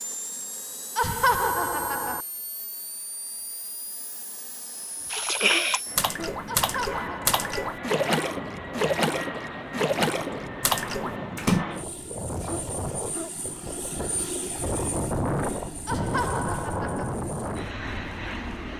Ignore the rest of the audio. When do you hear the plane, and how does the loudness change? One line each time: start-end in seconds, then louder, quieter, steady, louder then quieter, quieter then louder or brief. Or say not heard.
0.0-18.7 louder.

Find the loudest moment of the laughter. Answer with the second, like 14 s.
1 s.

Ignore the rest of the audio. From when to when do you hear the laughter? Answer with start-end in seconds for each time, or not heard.
0.9-2.2, 6.5-7.7, 15.8-17.1.